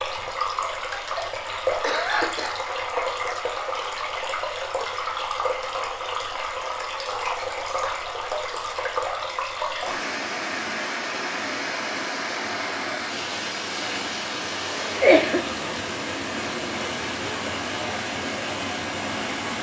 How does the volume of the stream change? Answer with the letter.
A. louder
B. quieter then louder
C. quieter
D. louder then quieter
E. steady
E.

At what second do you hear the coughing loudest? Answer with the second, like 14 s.
15 s.